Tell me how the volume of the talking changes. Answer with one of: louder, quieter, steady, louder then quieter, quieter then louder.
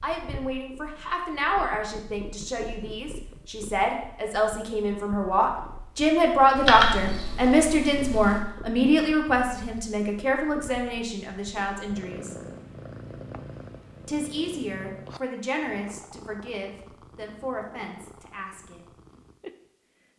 louder then quieter.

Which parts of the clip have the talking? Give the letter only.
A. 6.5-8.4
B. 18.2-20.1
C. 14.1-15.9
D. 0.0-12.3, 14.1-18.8
D.